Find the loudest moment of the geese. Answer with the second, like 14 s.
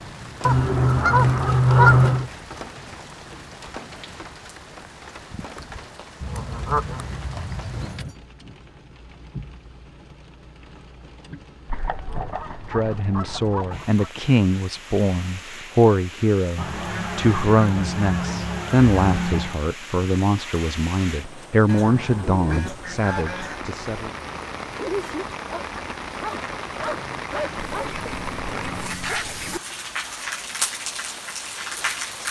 2 s.